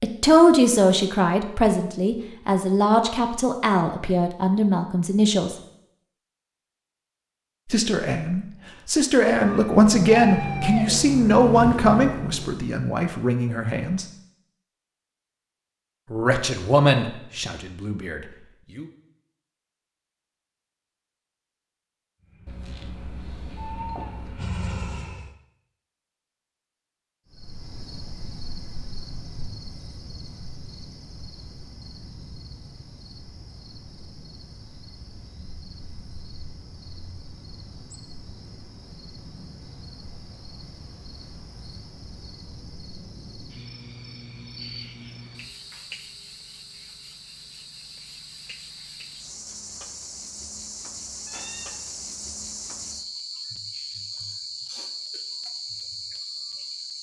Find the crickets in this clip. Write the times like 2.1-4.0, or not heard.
27.3-56.9.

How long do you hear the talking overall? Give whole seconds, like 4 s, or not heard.
15 s.